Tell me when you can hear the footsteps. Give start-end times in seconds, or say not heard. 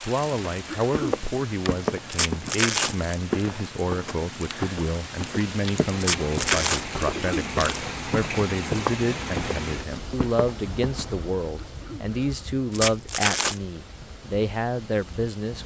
0.1-11.2.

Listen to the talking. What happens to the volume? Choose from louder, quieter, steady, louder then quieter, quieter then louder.
steady.